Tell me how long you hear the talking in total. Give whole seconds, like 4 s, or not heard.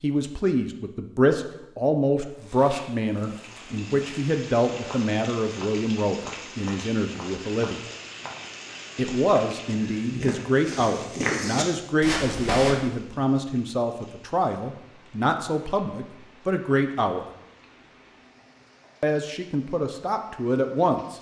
18 s.